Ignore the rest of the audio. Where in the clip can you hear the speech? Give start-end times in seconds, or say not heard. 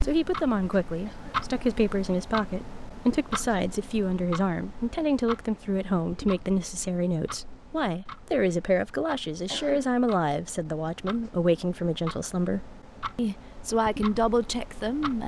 0.0-15.2.